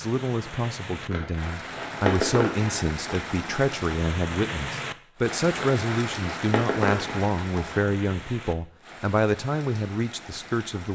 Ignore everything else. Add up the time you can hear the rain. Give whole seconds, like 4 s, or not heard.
11 s.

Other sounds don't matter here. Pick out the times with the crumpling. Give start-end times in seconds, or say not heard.
1.1-3.3, 5.5-7.8.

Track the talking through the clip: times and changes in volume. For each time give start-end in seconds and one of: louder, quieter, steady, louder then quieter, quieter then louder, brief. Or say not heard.
0.0-10.8 steady.